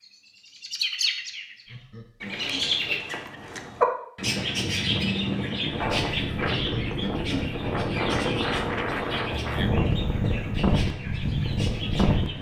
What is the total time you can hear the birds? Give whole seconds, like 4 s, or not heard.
12 s.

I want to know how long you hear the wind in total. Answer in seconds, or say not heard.
8 s.